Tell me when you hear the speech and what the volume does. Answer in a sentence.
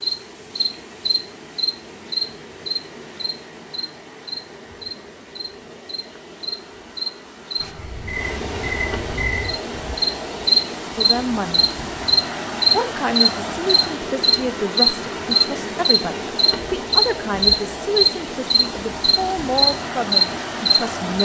The speech can be heard briefly from 10.9 to 11.7 s; and from 12.7 to 21.1 s, at a steady volume.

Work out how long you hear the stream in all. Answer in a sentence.
The stream can be heard for 21 seconds in total.